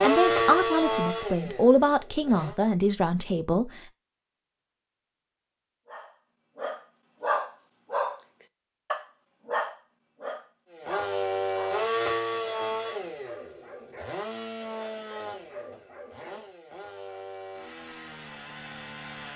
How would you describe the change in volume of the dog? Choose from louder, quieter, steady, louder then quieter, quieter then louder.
quieter.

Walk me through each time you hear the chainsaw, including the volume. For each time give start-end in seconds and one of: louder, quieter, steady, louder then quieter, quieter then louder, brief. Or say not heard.
0.0-2.5 brief
10.7-19.3 quieter.